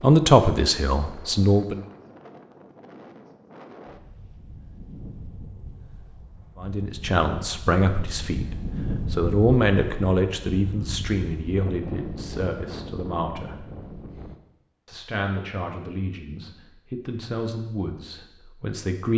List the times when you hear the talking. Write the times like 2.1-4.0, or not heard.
0.0-1.8, 6.5-13.7, 14.8-19.1.